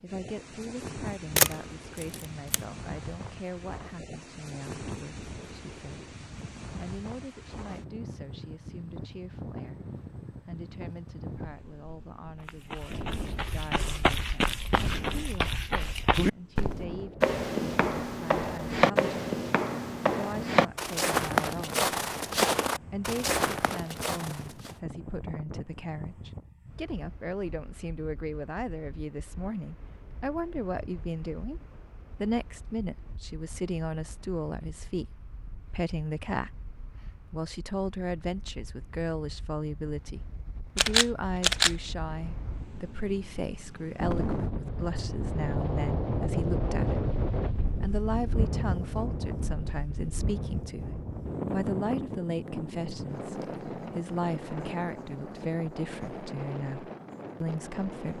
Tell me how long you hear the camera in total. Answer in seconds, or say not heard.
2 s.